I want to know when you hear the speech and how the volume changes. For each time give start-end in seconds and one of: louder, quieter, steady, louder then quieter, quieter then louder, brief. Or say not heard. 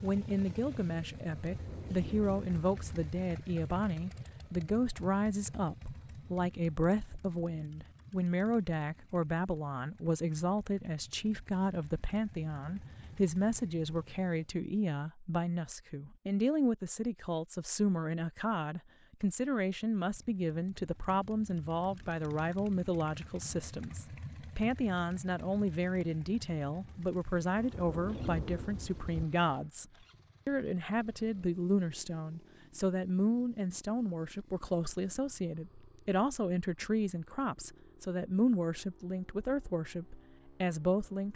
0.0-29.9 steady
30.4-41.3 steady.